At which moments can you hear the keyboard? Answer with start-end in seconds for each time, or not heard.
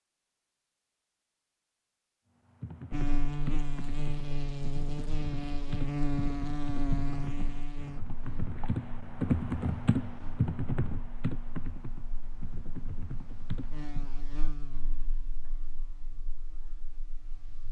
2.5-14.1.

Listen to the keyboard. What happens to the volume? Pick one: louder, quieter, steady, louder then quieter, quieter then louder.
louder then quieter.